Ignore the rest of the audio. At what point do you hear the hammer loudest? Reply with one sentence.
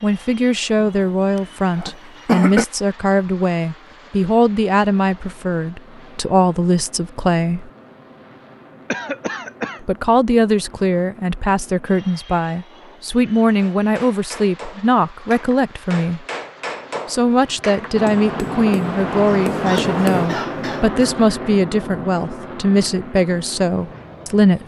The loudest moment of the hammer is at 20 seconds.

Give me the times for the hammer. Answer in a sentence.
You can hear the hammer from 13.6 to 20.3 s.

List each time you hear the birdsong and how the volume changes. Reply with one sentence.
The birdsong can't be heard in this clip.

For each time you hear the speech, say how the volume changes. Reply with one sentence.
You can hear the speech from 0.0 to 7.7 s, at a steady volume; from 9.8 to 16.2 s, at a steady volume; and from 17.1 to 24.6 s, at a steady volume.